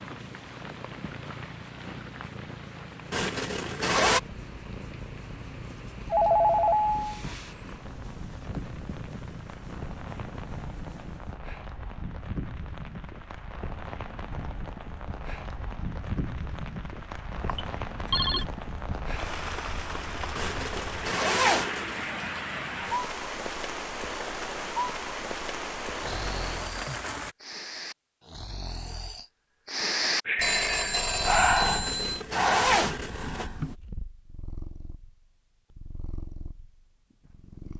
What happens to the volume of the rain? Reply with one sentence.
The volume of the rain goes up.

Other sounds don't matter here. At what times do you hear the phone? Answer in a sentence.
The phone can be heard from 6.1 to 7.2 s, from 17.3 to 18.4 s and from 30.4 to 32.2 s.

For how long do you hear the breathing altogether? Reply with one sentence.
The breathing can be heard for 8 seconds in total.